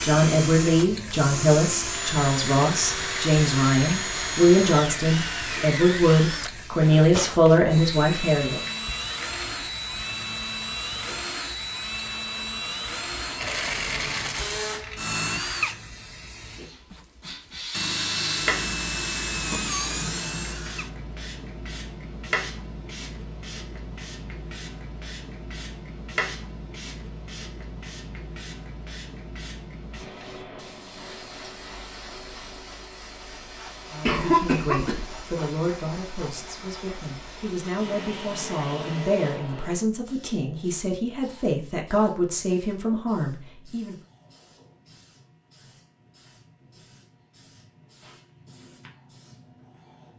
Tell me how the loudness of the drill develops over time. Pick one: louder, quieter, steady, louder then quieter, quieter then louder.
steady.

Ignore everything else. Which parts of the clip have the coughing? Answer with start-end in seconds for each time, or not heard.
34.0-35.1.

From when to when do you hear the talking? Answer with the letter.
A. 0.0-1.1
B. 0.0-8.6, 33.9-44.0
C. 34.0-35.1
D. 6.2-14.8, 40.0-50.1
B.